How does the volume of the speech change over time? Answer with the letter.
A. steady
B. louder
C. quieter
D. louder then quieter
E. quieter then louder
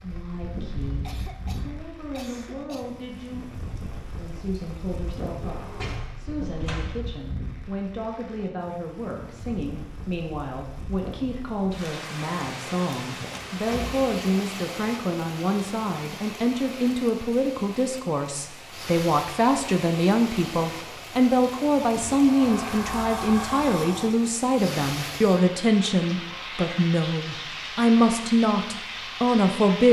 B.